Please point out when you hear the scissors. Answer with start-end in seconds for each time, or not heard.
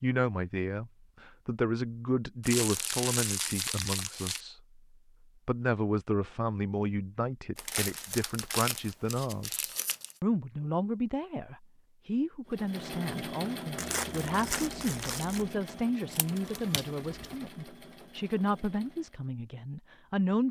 16.1-17.4.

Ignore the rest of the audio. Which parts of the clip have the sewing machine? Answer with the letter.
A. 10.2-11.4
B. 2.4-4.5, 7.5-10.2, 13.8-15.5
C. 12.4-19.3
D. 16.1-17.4
C.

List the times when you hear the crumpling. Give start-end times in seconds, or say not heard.
2.4-4.5, 7.5-10.2, 13.8-15.5.